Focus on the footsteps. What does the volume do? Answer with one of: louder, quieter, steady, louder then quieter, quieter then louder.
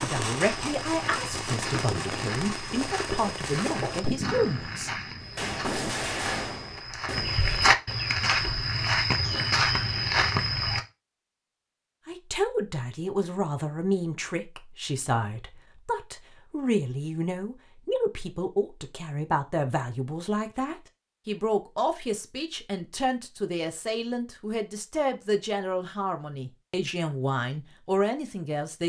louder.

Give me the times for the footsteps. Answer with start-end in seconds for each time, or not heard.
0.4-10.8.